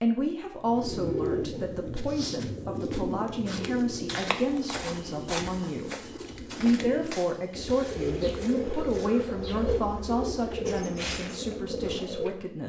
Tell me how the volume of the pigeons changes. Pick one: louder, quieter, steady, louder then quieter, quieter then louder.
quieter then louder.